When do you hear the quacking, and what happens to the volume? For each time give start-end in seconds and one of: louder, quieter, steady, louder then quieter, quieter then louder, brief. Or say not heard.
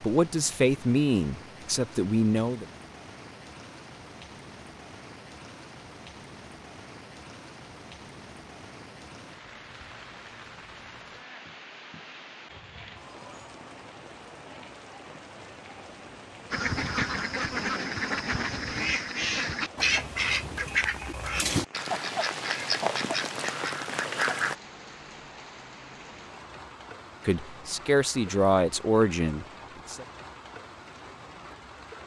16.5-24.6 steady.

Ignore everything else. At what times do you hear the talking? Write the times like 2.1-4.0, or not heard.
0.0-2.6, 27.2-30.1.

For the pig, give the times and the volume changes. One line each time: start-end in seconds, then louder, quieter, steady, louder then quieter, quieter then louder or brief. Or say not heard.
not heard.